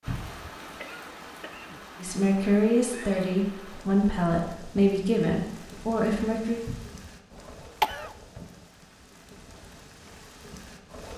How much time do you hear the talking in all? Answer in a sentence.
You can hear the talking for 5 seconds altogether.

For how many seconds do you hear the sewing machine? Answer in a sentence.
You can't hear the sewing machine here.